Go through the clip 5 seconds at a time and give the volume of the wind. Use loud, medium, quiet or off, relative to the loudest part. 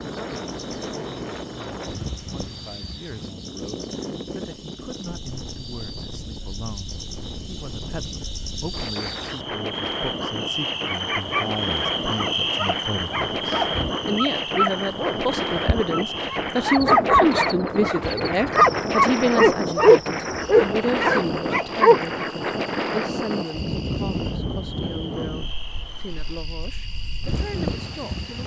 medium, medium, loud, loud, loud, medium.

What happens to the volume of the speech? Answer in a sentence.
The volume of the speech goes up, then down.